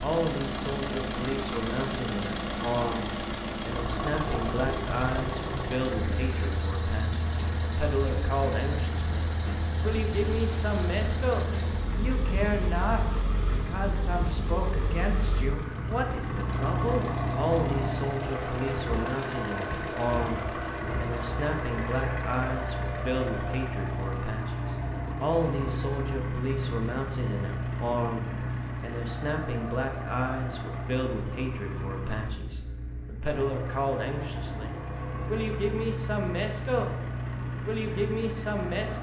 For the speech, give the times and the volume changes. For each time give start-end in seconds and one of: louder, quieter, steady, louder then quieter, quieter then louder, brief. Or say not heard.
0.0-37.0 steady
37.6-38.9 brief.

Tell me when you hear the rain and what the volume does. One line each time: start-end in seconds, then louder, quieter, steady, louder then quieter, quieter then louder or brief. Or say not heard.
not heard.